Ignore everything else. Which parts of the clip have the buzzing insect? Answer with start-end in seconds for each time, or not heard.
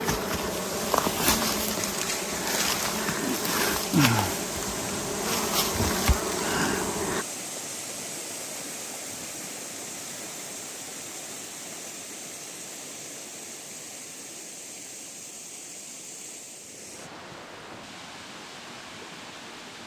0.0-7.2.